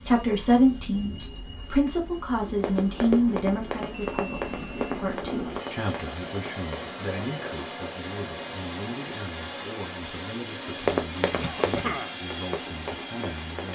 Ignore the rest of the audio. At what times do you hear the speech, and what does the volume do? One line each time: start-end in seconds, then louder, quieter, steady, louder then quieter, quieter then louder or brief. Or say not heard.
0.0-13.6 quieter.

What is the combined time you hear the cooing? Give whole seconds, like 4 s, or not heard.
not heard.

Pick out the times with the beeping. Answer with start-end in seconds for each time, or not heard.
3.9-5.0.